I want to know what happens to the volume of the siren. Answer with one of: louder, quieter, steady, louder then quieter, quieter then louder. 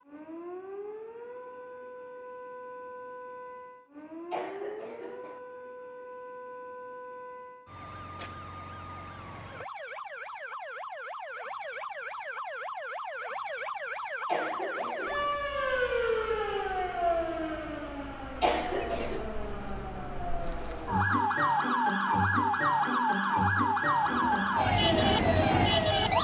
louder.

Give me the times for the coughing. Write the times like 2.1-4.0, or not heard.
4.3-5.4, 14.2-15.4, 18.4-19.3.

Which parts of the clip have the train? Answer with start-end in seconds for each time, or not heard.
23.9-26.1.